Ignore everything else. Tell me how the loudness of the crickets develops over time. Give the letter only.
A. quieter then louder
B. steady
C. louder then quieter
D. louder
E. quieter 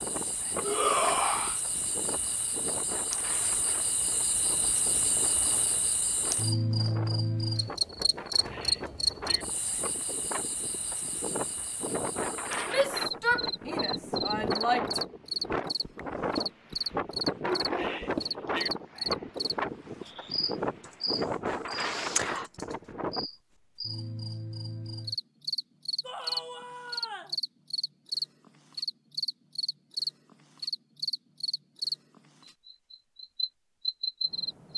B.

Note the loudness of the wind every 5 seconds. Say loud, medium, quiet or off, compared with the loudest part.
medium, medium, loud, loud, loud, off, off.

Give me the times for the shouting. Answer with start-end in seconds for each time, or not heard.
0.6-1.6, 12.7-15.1, 26.0-27.4.